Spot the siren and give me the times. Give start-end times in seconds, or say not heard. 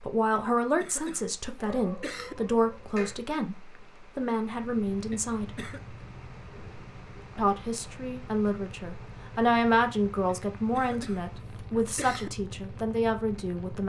not heard.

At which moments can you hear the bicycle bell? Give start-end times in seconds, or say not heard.
not heard.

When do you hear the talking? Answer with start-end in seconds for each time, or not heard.
0.0-5.7, 7.3-13.8.